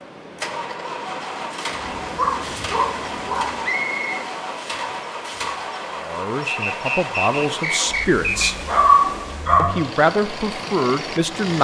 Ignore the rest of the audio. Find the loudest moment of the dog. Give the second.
9 s.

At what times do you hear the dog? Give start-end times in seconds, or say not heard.
1.9-3.5, 8.3-10.0.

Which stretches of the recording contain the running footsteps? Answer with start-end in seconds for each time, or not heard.
not heard.